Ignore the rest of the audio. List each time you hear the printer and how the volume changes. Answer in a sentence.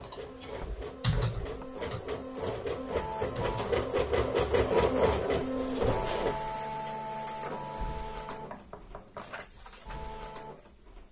The printer can be heard from 0.0 to 11.0 s, getting louder then quieter.